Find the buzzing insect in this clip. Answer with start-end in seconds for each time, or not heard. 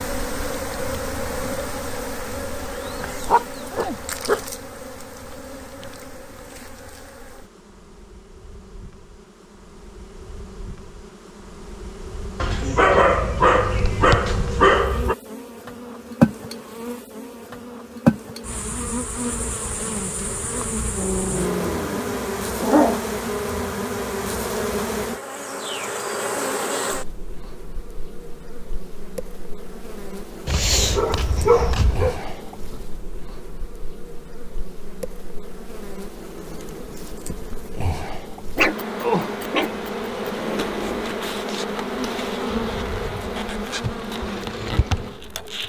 0.0-45.6.